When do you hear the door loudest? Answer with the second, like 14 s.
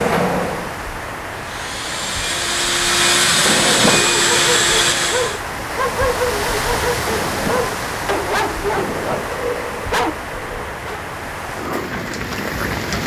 4 s.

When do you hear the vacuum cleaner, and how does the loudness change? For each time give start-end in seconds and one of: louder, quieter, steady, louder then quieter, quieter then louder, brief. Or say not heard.
0.0-5.4 louder.